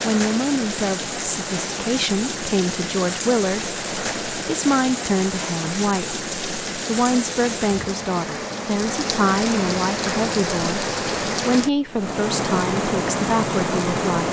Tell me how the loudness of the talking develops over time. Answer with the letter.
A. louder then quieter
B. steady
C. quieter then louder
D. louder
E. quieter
B.